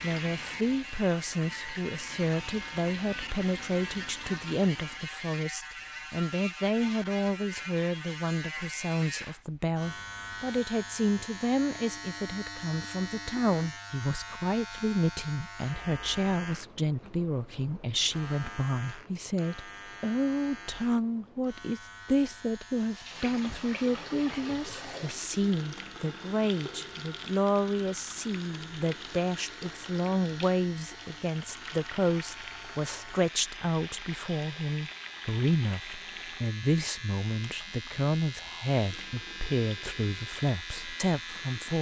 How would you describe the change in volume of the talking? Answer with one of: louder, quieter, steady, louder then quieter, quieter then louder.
steady.